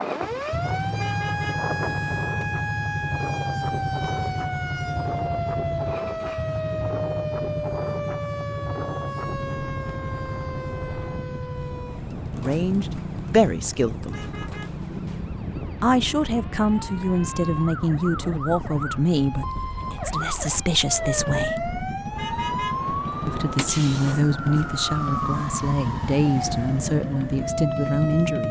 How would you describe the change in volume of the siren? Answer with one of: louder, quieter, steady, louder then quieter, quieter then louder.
quieter then louder.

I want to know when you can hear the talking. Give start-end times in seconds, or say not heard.
12.4-14.3, 15.8-21.6, 23.2-28.4.